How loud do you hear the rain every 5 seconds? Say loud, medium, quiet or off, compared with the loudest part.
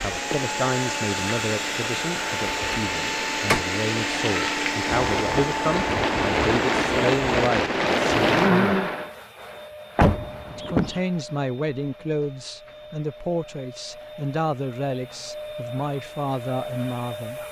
medium, loud, off, off.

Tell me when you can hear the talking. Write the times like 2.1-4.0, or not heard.
0.0-8.8, 10.4-17.4.